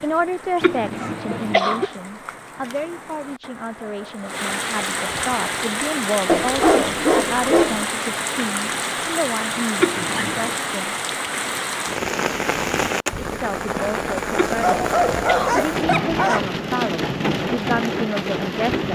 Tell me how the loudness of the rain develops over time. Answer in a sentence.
The loudness of the rain goes up.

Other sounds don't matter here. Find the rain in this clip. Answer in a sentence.
You can hear the rain from 0.0 to 18.9 s.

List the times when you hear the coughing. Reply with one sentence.
You can hear the coughing from 0.6 to 1.9 s, from 9.8 to 10.6 s and from 14.3 to 15.6 s.